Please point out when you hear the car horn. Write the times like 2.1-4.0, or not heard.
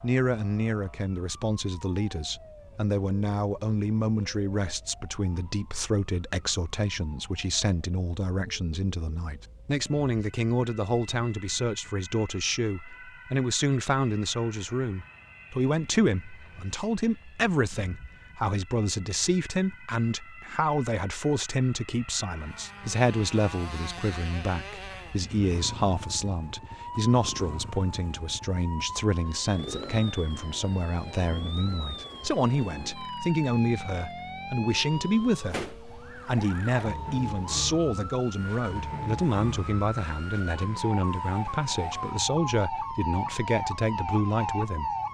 not heard.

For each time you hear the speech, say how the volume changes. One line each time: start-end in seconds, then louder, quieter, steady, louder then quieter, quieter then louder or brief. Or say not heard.
0.0-44.9 steady.